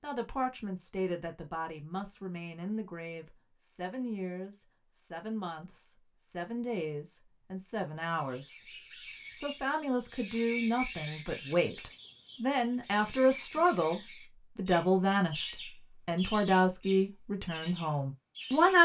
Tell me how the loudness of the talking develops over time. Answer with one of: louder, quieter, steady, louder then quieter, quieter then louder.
louder.